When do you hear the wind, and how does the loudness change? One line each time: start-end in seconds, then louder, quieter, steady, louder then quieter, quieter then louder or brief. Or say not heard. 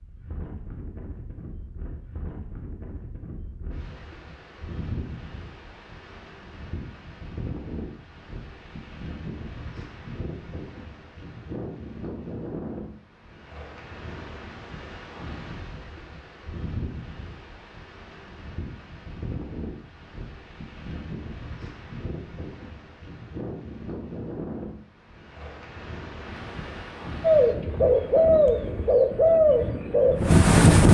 0.0-30.8 louder.